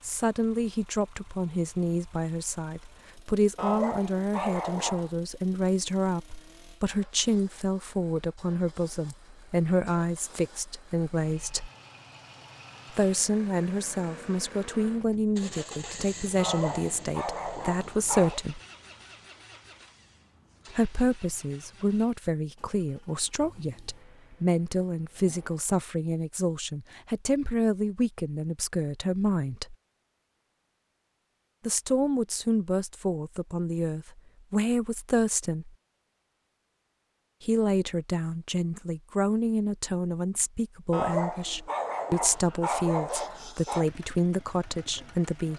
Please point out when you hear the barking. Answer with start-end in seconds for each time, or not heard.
3.5-5.1, 16.4-18.4, 40.9-43.9.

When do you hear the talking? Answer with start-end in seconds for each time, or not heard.
0.0-11.7, 12.9-18.6, 20.7-29.8, 31.6-35.7, 37.4-45.5.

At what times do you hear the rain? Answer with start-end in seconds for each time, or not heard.
not heard.